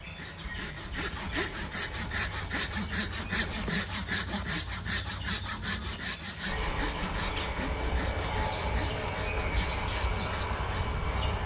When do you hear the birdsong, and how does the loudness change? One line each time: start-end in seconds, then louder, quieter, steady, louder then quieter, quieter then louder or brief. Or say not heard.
0.0-11.4 louder.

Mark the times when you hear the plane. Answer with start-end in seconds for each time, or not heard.
0.0-3.7, 6.5-11.4.